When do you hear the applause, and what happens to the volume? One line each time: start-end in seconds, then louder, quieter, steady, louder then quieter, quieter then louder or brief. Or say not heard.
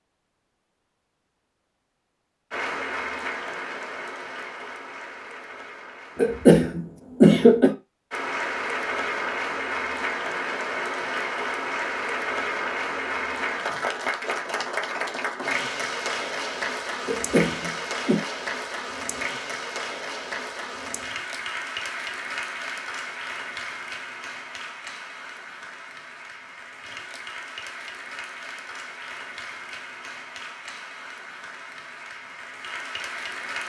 2.5-6.5 quieter
8.1-33.6 quieter.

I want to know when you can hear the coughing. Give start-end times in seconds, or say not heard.
6.2-7.7, 17.1-18.2.